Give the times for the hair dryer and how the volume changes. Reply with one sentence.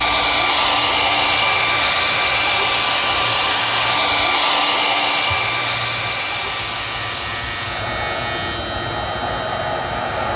You can hear the hair dryer from 0.0 to 10.3 s, getting quieter.